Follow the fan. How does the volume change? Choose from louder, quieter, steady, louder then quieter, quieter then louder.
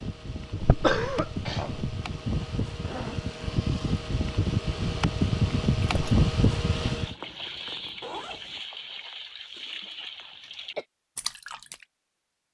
louder.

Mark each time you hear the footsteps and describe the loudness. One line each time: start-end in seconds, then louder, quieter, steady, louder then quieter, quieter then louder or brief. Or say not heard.
not heard.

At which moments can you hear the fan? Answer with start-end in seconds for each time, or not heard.
0.0-7.2.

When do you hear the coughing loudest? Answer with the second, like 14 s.
1 s.